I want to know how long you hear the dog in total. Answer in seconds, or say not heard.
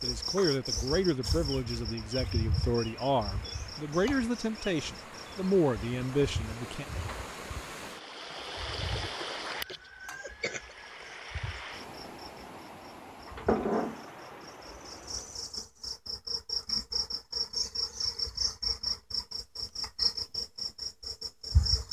not heard.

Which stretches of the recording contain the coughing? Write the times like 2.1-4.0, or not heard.
9.0-10.8.